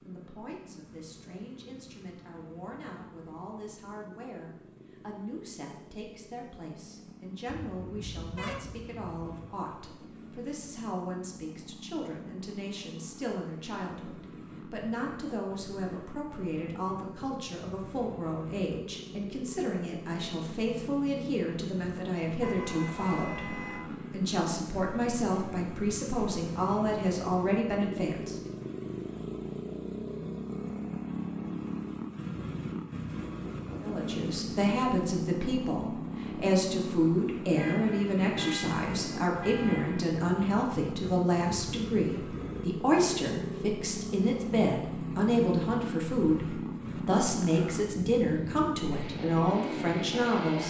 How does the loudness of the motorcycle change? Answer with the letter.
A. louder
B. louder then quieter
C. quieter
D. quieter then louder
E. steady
A.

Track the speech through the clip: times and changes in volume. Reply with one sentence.
You can hear the speech from 0.0 to 28.4 s, getting louder; and from 33.8 to 50.6 s, at a steady volume.